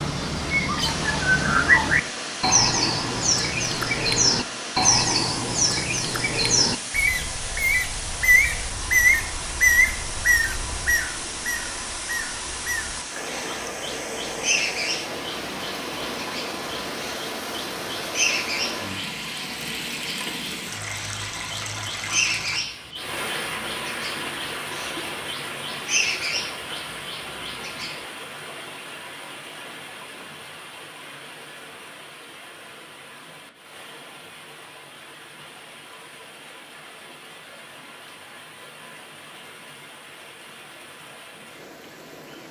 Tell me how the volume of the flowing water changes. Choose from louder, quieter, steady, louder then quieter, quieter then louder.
quieter.